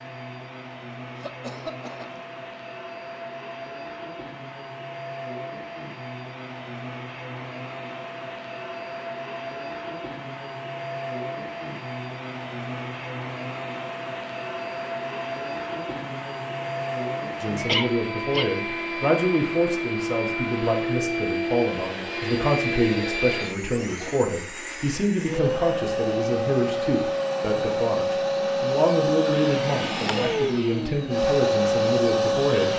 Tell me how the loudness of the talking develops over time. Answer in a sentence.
The volume of the talking stays about the same.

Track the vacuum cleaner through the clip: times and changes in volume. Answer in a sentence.
You can hear the vacuum cleaner from 0.0 to 32.7 s, getting louder.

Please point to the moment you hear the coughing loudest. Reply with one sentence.
The loudest moment of the coughing is at 18 seconds.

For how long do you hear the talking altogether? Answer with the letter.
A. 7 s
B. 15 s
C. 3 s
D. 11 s
B.